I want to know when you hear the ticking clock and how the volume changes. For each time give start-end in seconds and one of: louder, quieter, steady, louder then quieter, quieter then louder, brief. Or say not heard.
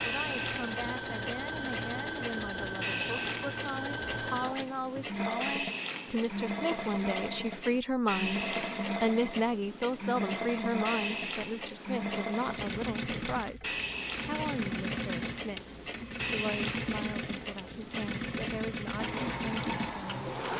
0.0-20.5 steady.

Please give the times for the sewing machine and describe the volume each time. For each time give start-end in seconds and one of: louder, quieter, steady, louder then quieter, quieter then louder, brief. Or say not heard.
0.0-20.5 steady.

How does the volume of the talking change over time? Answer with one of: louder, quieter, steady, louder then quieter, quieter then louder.
louder then quieter.